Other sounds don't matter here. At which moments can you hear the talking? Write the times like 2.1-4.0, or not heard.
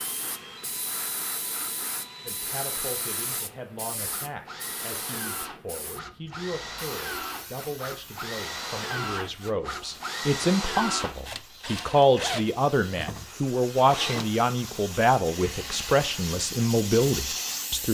2.2-17.8.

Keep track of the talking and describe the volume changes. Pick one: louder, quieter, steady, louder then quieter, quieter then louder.
louder.